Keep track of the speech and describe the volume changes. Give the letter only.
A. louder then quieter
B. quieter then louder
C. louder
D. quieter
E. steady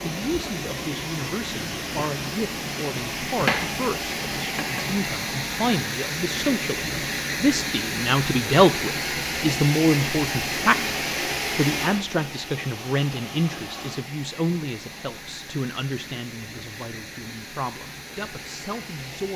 A.